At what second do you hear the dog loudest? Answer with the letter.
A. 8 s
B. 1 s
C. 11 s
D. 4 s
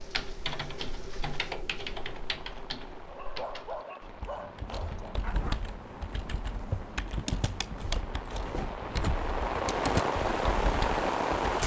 D.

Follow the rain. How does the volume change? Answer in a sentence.
The loudness of the rain goes up.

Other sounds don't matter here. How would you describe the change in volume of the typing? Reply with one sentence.
The volume of the typing goes down, then up.